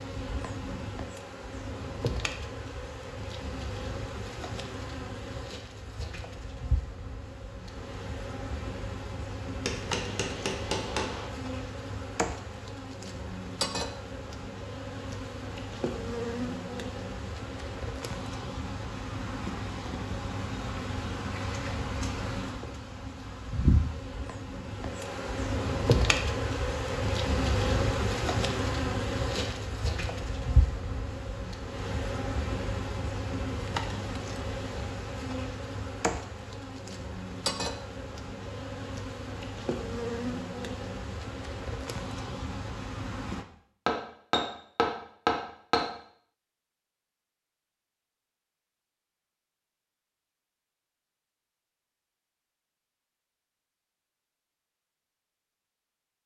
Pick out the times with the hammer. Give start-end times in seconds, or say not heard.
9.6-11.3, 43.9-45.8.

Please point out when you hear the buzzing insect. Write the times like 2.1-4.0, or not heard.
0.0-43.5.